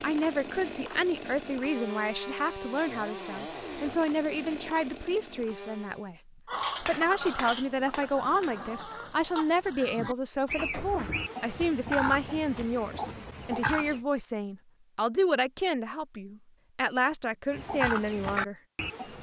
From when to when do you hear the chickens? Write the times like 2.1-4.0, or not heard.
6.5-14.0, 17.5-19.1.